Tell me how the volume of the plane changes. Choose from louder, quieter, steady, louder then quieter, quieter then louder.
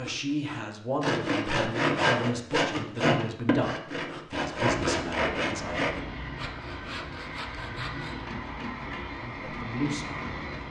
steady.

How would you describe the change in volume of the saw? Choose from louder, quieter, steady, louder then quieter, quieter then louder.
quieter.